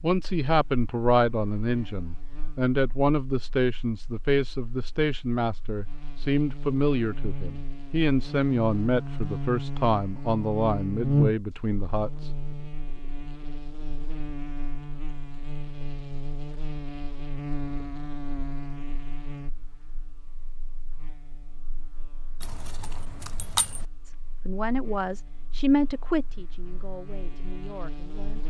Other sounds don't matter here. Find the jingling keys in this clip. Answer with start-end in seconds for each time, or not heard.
22.4-23.9.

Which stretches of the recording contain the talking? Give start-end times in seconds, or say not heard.
0.0-12.3, 24.1-28.4.